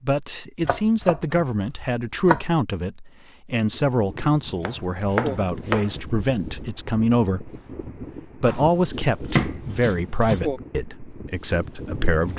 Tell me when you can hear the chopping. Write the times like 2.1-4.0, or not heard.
0.6-2.5, 4.7-6.0, 8.4-10.4.